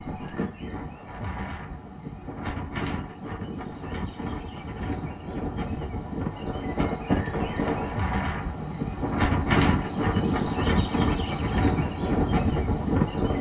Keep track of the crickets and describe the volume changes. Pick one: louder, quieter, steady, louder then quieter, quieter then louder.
louder.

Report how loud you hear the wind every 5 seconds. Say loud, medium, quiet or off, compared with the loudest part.
medium, loud, loud.